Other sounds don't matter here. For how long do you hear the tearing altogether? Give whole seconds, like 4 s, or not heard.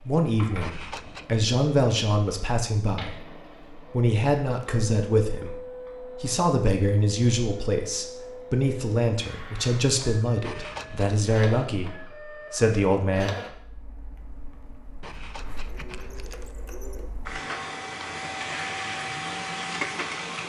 3 s.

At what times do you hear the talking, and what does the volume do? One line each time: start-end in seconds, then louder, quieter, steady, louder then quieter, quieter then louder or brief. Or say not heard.
0.0-13.3 steady.